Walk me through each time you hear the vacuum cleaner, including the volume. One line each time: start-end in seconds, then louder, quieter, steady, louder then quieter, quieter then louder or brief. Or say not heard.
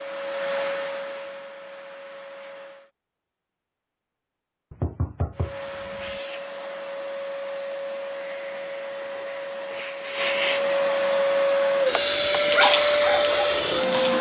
0.0-2.9 brief
5.3-14.1 louder.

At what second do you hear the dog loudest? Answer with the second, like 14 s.
13 s.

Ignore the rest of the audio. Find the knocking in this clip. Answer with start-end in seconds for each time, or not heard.
4.7-6.2.